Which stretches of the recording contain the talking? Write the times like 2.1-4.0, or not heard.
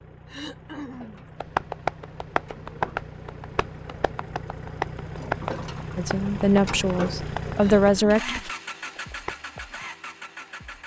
6.0-8.5.